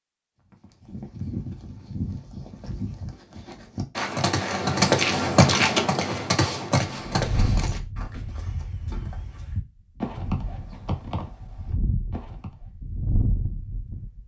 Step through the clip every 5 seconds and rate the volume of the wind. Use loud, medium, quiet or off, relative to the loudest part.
off, loud, loud.